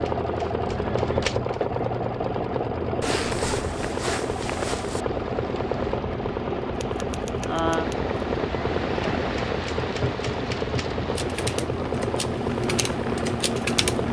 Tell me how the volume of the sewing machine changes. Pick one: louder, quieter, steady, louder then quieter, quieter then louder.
steady.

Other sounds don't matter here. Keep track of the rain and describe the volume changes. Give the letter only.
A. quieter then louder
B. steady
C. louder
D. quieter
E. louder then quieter
E.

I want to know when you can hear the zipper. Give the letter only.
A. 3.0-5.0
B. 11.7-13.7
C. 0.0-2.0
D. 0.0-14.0
A.